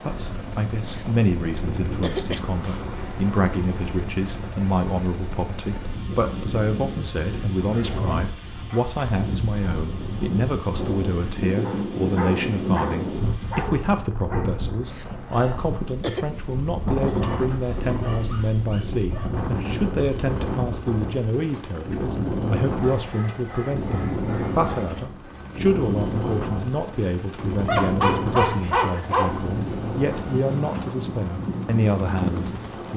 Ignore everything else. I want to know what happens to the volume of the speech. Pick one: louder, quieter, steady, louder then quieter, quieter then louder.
steady.